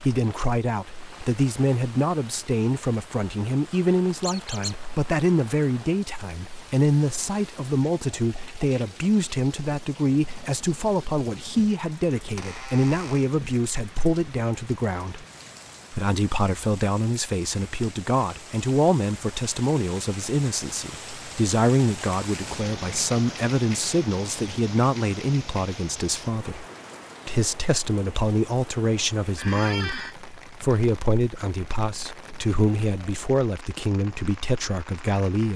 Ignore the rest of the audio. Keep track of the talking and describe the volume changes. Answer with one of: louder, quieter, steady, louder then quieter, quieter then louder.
steady.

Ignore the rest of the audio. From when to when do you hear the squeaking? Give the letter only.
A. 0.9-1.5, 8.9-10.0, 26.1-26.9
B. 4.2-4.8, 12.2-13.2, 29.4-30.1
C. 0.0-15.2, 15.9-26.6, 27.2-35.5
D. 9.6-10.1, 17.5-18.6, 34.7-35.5
B.